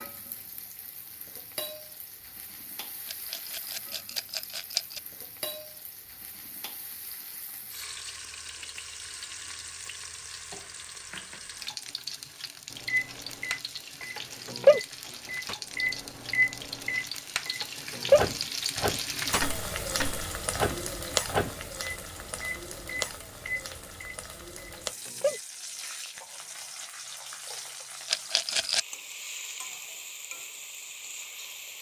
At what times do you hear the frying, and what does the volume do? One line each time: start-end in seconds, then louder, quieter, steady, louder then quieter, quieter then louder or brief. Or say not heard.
0.0-31.7 louder then quieter.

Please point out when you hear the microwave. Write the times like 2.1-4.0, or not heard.
12.8-25.4.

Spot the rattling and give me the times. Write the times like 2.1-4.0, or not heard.
3.0-5.0, 28.1-28.9.